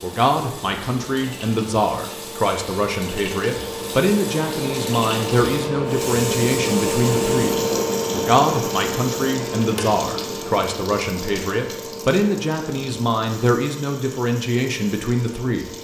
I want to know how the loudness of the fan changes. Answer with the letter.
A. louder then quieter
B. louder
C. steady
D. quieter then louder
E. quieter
A.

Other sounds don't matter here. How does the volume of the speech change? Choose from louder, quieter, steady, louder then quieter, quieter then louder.
steady.